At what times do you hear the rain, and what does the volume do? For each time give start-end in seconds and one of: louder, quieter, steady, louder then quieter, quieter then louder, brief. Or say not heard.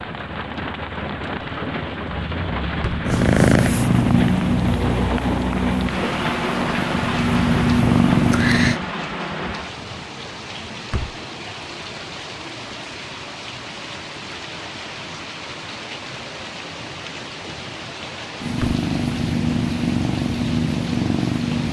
0.0-21.6 quieter.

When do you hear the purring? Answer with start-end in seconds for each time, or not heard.
3.0-8.8, 18.4-21.6.